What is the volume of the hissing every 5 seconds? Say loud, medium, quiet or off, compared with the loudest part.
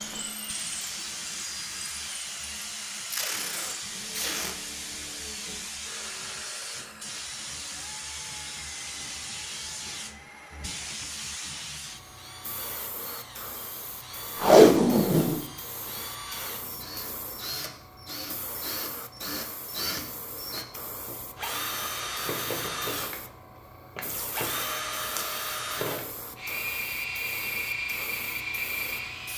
loud, loud, loud, medium, medium, medium.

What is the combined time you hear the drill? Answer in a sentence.
You can hear the drill for 29 seconds altogether.